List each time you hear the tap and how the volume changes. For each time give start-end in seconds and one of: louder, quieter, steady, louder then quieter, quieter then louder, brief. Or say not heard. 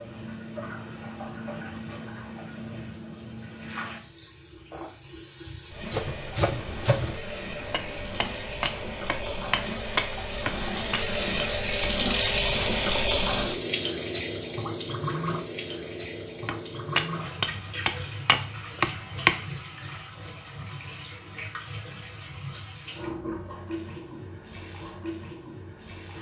0.0-26.1 louder then quieter.